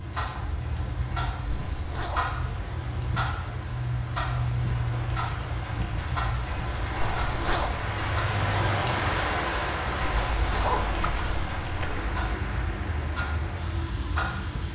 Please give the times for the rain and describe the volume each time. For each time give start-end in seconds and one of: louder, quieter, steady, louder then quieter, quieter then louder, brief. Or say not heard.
0.0-14.6 louder then quieter.